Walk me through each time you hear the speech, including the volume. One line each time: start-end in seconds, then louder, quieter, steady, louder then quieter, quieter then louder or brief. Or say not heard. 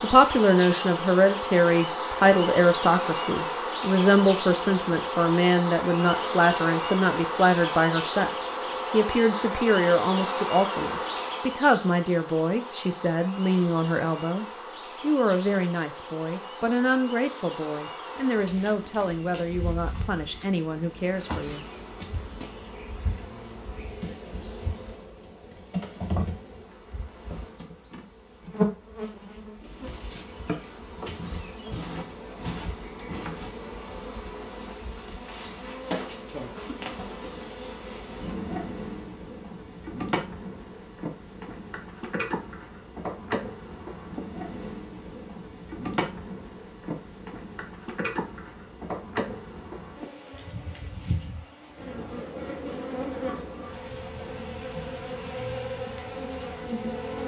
0.0-21.6 quieter.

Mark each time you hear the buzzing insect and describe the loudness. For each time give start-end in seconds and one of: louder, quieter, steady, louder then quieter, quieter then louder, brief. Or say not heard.
0.0-57.2 quieter.